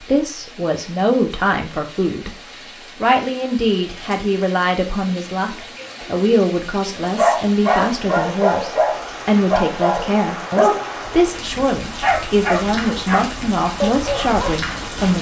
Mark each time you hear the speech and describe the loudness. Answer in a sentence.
The speech can be heard briefly from 0.0 to 2.4 s; and from 3.0 to 15.1 s, at a steady volume.